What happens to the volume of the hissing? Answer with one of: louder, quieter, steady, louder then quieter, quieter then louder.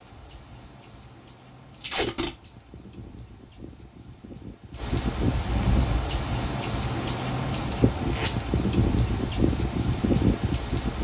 louder.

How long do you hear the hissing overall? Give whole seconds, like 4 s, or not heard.
11 s.